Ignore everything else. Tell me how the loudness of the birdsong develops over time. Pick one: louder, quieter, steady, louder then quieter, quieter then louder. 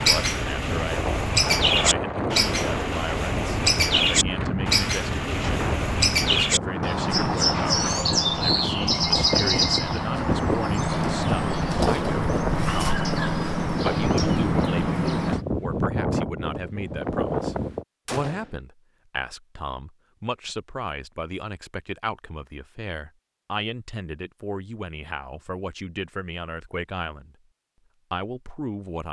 steady.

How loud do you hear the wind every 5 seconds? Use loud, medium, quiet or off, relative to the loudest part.
loud, loud, loud, loud, off, off.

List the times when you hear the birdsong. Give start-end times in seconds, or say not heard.
0.0-15.4.